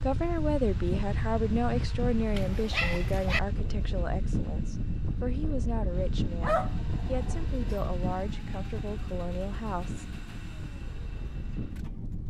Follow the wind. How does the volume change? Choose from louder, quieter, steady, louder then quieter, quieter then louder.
quieter.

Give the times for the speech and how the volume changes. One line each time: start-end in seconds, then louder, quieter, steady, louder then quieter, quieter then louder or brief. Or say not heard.
0.0-10.1 quieter.